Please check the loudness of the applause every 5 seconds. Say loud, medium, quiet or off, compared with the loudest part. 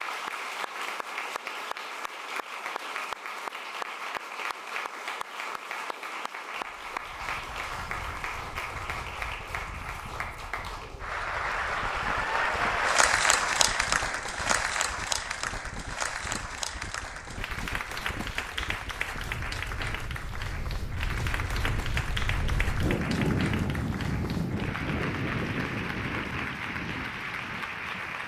medium, medium, loud, medium, medium, medium.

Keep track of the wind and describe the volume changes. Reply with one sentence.
The volume of the wind goes up.